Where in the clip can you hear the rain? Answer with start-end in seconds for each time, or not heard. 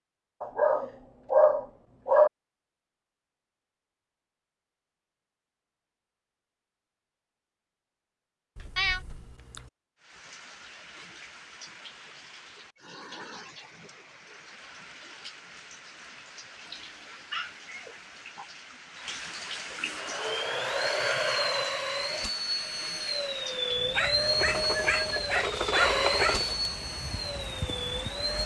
10.0-28.4.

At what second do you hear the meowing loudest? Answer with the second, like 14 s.
9 s.